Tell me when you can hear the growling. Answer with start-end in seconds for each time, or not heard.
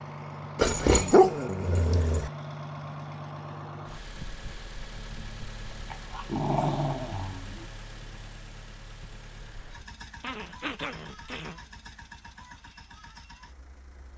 0.6-2.3, 5.9-7.7, 10.2-11.6.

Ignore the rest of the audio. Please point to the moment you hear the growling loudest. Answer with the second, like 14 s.
1 s.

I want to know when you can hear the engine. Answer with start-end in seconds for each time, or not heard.
0.0-14.1.